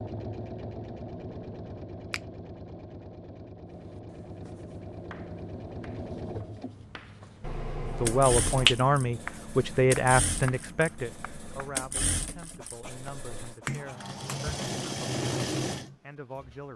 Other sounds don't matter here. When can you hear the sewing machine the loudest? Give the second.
15 s.